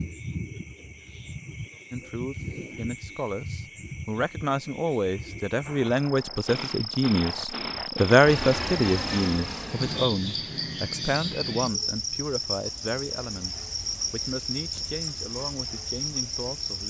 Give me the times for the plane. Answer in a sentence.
You can hear the plane from 8.2 to 10.1 s.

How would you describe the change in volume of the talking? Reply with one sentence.
The volume of the talking goes up, then down.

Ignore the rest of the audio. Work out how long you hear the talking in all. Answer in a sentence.
The talking can be heard for 15 seconds in total.